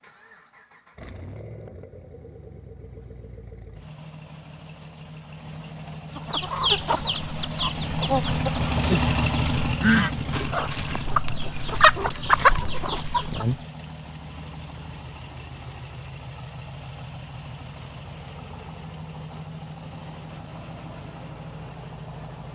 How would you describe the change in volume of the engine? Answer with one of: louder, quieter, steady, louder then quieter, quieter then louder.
louder then quieter.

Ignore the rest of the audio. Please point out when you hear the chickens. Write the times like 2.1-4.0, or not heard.
6.3-13.6.